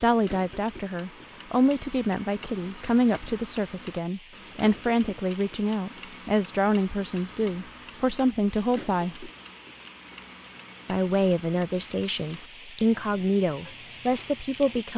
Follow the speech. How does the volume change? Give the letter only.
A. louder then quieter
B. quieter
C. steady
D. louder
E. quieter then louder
C.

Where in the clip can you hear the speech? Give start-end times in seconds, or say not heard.
0.0-9.3, 10.8-14.9.